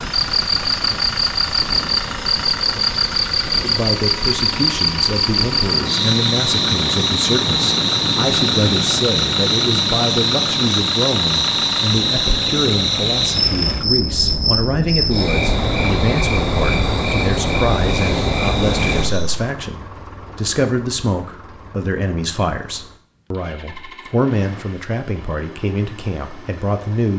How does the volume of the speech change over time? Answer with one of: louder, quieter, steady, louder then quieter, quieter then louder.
steady.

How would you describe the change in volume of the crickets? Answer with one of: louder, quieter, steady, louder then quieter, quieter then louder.
steady.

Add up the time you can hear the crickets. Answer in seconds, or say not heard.
19 s.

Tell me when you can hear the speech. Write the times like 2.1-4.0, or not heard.
3.6-27.1.